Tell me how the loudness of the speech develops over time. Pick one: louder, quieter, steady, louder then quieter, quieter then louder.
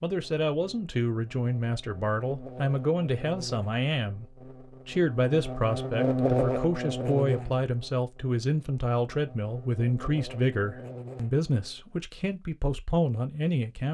steady.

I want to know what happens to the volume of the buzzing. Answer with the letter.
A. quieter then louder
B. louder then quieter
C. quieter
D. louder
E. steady
B.